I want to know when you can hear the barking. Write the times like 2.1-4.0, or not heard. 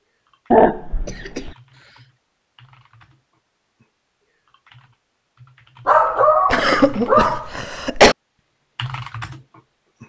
0.5-1.6, 5.8-7.5.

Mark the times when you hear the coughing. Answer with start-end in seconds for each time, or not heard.
1.1-1.9, 6.5-8.2.